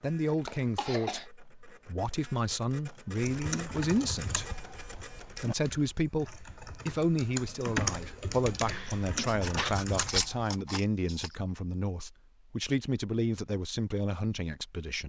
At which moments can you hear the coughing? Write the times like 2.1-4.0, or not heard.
0.2-1.2, 8.7-9.8.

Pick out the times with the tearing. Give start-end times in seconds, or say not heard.
not heard.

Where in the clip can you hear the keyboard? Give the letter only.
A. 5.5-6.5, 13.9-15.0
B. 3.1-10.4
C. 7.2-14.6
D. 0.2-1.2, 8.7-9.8
B.